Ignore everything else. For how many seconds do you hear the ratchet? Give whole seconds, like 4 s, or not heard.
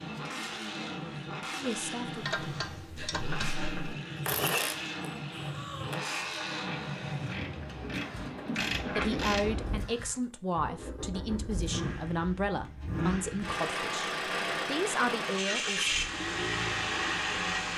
8 s.